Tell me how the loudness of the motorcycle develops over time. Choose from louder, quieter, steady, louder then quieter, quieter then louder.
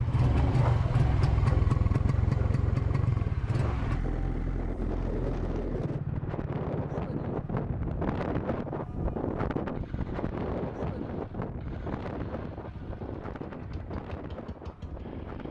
quieter.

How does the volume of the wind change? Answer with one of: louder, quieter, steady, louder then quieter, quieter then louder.
louder then quieter.